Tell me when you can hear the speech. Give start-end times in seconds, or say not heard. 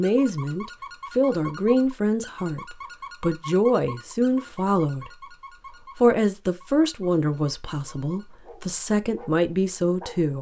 0.0-5.1, 6.0-10.3.